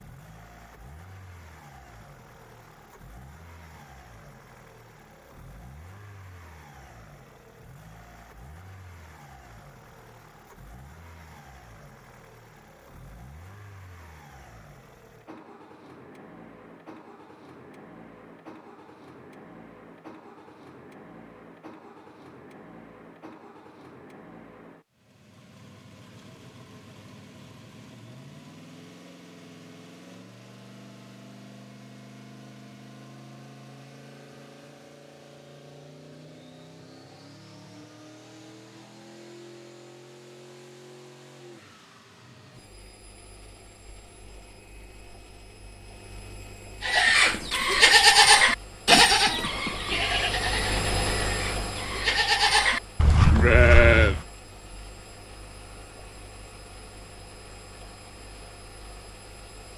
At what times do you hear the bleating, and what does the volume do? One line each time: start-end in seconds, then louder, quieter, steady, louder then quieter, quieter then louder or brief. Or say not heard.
46.8-54.2 quieter then louder.